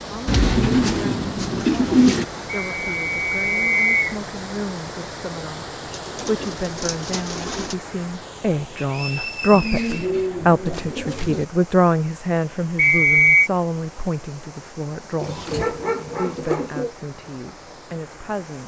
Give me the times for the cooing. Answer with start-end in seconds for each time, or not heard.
0.2-2.2, 5.9-7.8, 9.5-11.4, 15.2-16.9.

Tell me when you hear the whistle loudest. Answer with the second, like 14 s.
13 s.